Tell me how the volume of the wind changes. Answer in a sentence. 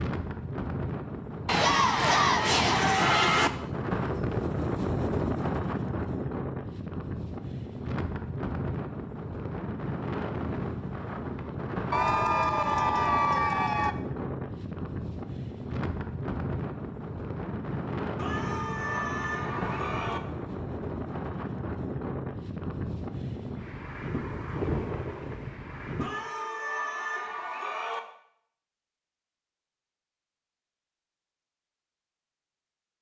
The volume of the wind stays about the same.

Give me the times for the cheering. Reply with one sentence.
You can hear the cheering from 1.4 to 3.5 s, from 11.9 to 13.9 s, from 18.1 to 20.2 s and from 26.0 to 28.0 s.